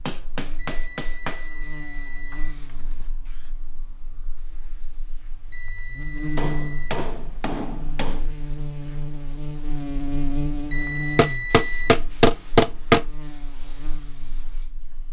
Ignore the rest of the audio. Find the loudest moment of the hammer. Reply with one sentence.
The volume of the hammer peaks at 13 seconds.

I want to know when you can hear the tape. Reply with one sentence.
The tape can't be heard in this clip.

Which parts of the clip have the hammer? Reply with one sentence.
You can hear the hammer from 0.1 to 1.4 s, from 6.3 to 8.2 s and from 11.2 to 13.1 s.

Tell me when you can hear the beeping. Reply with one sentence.
The beeping can be heard from 0.6 to 3.1 s, from 5.5 to 7.0 s and from 10.7 to 11.9 s.